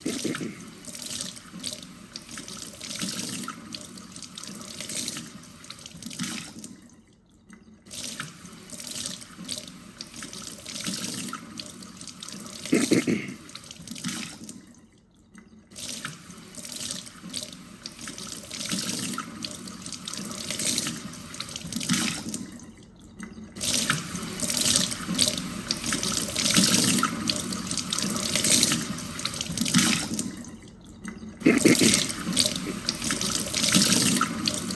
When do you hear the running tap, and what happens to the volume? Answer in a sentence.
You can hear the running tap from 0.0 to 34.6 s, getting louder.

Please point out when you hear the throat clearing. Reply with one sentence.
The throat clearing can be heard from 0.1 to 0.8 s, from 12.7 to 13.3 s and from 31.4 to 32.8 s.